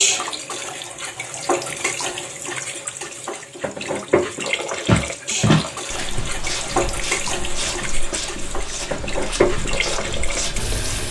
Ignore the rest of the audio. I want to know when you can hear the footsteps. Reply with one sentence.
You can hear the footsteps from 4.8 to 11.0 s.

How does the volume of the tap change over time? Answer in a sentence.
The loudness of the tap stays about the same.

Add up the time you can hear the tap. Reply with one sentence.
You can hear the tap for 11 seconds altogether.